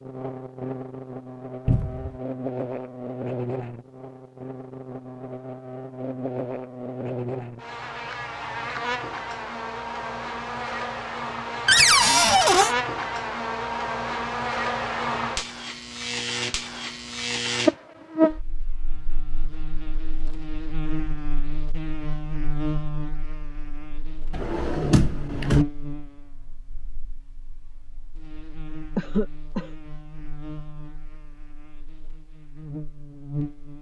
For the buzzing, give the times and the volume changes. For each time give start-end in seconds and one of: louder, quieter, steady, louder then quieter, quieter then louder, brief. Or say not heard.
0.0-33.7 louder then quieter.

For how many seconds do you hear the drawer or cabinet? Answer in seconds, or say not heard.
3 s.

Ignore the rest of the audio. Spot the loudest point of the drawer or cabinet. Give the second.
12 s.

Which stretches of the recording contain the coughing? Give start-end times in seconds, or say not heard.
28.9-29.7.